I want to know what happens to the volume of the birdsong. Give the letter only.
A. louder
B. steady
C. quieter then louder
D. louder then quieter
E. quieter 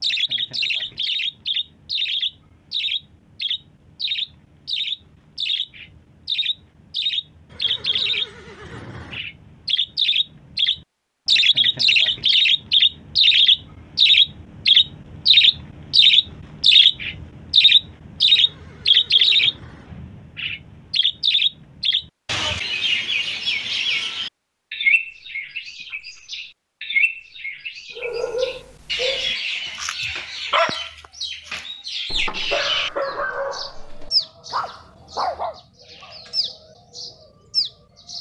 D.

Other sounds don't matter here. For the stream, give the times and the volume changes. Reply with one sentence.
You can't hear the stream here.